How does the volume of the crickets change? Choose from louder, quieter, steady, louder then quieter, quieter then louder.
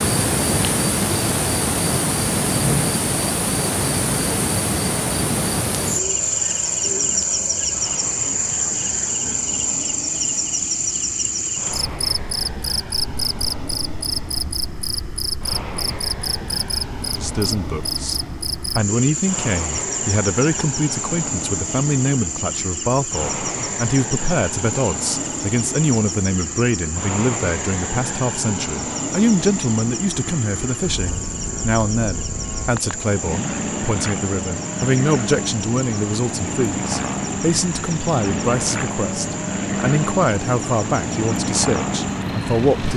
quieter.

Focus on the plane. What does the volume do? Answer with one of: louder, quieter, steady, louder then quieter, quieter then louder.
louder.